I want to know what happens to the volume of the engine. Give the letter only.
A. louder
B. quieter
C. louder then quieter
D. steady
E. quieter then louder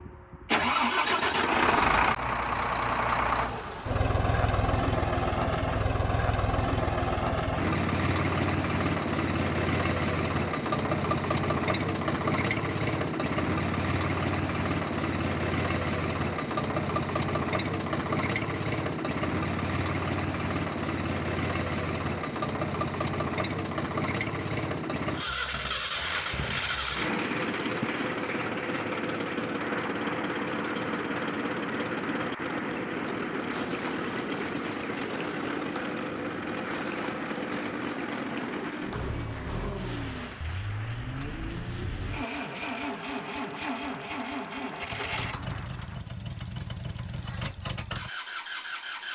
B.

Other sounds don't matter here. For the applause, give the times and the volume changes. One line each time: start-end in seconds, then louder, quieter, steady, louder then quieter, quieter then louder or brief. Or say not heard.
25.9-46.0 quieter.